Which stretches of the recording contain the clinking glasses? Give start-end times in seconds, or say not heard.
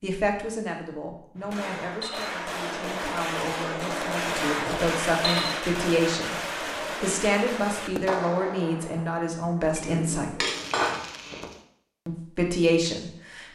1.4-2.4, 4.5-5.7, 9.8-11.0.